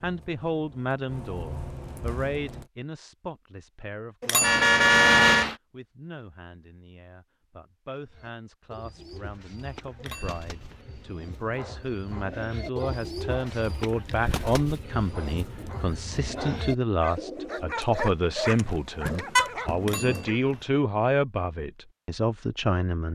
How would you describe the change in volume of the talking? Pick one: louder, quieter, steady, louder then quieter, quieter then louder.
quieter then louder.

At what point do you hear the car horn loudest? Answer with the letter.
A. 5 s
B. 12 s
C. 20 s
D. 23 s
A.